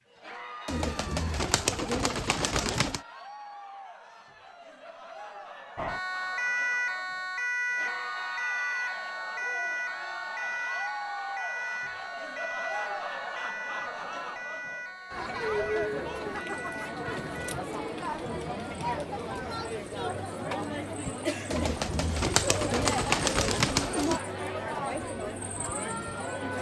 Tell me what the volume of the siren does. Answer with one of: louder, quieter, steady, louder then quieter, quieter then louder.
quieter.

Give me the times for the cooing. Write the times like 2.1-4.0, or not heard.
0.7-3.0, 21.5-24.2.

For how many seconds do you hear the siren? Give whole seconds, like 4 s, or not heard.
12 s.